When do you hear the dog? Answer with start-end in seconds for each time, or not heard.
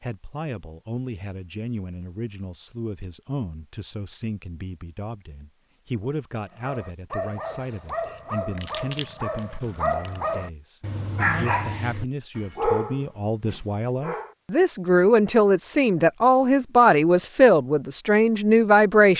6.5-14.3.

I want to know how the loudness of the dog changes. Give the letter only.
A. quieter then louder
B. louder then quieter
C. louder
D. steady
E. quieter
C.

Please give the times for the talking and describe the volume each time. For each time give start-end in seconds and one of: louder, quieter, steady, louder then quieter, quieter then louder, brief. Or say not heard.
0.0-19.1 louder.